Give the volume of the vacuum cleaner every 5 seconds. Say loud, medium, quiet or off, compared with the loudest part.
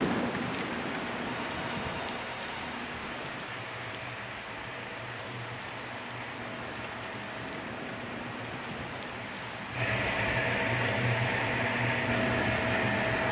quiet, medium, loud.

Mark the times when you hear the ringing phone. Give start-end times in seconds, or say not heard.
1.2-2.8.